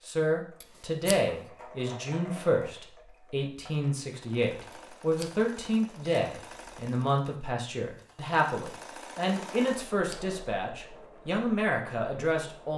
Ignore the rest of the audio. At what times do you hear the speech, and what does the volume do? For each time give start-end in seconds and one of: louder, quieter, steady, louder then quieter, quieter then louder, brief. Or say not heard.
0.1-12.7 steady.